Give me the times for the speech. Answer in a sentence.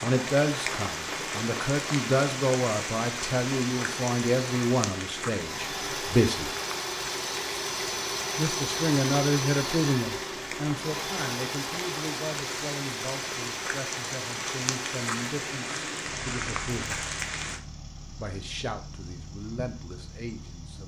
You can hear the speech from 0.0 to 6.5 s, from 8.3 to 17.1 s and from 18.1 to 20.8 s.